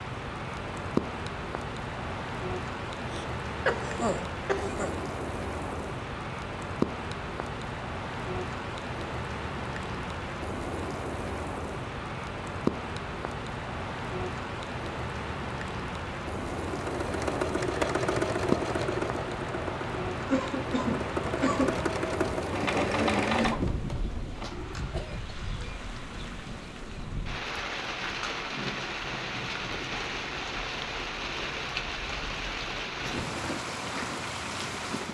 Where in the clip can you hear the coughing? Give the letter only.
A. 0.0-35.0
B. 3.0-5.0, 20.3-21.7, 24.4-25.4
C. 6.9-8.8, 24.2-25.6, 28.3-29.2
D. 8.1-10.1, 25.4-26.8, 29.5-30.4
B.